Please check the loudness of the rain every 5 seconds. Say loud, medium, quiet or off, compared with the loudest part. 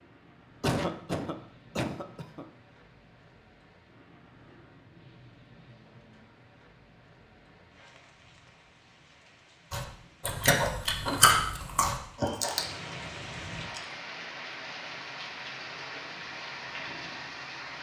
quiet, quiet, loud, loud.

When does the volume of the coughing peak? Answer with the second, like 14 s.
1 s.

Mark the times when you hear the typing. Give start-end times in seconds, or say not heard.
not heard.